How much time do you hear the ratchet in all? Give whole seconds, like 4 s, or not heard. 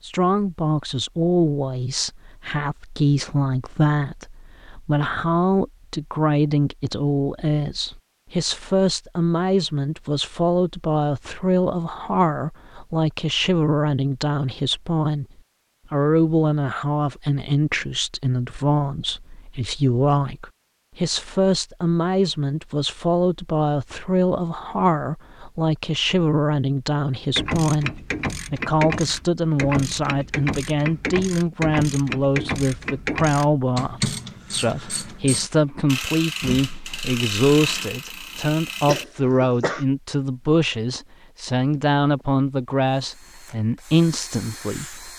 12 s.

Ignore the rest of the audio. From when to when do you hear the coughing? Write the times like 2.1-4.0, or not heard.
38.9-39.9.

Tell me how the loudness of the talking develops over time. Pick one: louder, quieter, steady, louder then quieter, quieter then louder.
steady.